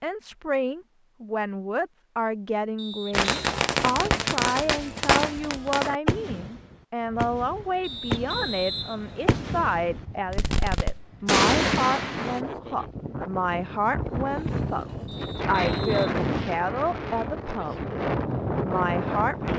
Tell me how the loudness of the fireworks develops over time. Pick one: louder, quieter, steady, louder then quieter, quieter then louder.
quieter then louder.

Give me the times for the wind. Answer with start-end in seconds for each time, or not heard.
7.0-19.5.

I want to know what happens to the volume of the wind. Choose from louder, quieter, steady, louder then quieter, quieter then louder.
louder.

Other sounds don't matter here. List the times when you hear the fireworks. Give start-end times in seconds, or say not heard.
3.1-12.4.